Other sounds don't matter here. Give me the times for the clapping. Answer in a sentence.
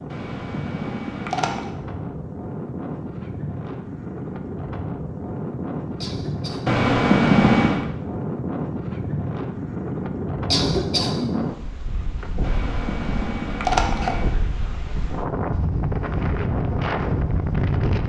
You can't hear the clapping here.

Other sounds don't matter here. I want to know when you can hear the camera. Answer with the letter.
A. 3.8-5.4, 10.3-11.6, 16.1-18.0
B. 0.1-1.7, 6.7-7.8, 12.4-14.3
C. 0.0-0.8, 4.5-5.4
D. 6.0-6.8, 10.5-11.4
B.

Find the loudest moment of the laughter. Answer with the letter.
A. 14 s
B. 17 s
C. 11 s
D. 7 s
C.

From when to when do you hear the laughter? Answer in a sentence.
You can hear the laughter from 6.0 to 6.8 s and from 10.5 to 11.4 s.